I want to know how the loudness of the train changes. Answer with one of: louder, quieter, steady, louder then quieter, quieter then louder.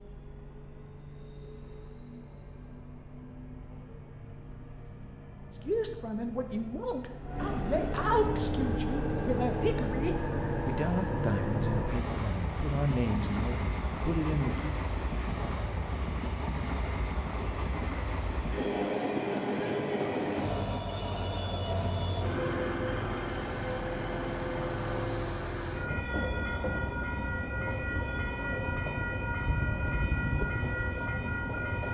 louder.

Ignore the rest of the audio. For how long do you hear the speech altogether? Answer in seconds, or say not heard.
9 s.